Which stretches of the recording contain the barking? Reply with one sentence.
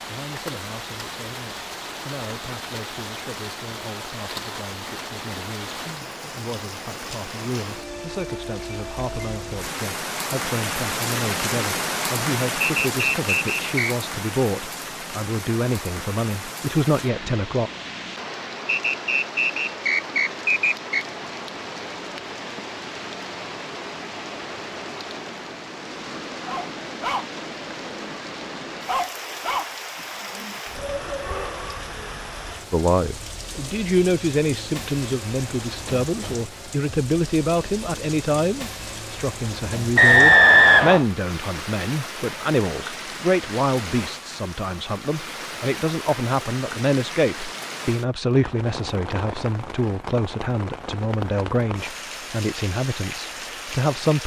The barking can be heard from 26.4 to 28.2 s and from 28.9 to 31.9 s.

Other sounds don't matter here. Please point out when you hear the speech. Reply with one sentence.
The speech can be heard from 0.0 to 17.7 s and from 32.7 to 54.2 s.